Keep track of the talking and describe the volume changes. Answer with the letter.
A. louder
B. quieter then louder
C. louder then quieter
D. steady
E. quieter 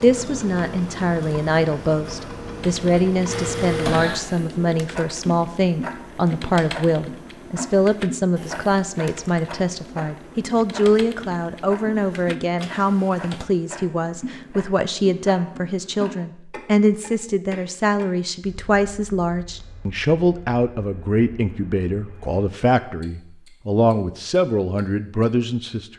D.